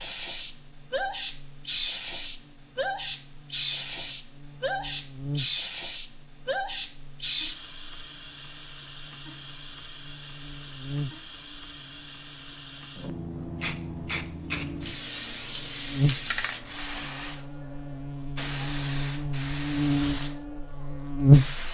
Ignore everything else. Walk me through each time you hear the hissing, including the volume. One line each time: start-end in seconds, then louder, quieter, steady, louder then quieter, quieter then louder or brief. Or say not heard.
0.0-21.6 quieter then louder.